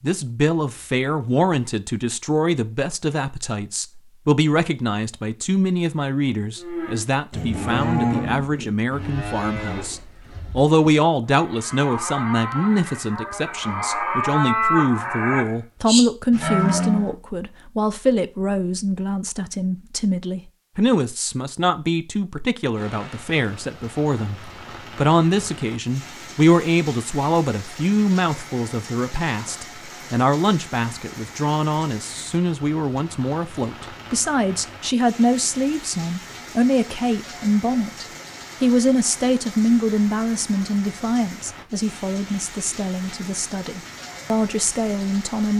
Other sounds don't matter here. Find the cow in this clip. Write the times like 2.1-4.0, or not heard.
6.5-17.1.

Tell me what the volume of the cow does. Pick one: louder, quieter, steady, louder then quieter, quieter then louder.
quieter then louder.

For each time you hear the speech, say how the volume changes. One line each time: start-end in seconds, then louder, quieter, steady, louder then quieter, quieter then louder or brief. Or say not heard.
0.0-45.5 steady.